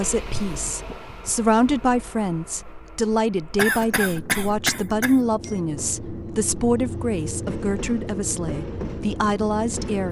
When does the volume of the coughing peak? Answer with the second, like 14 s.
4 s.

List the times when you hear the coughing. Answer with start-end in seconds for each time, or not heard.
3.5-5.5.